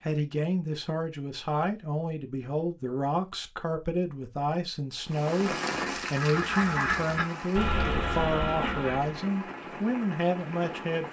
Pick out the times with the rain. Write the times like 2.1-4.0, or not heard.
5.0-11.0.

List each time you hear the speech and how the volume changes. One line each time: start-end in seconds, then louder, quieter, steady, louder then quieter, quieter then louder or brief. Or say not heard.
0.0-11.0 steady.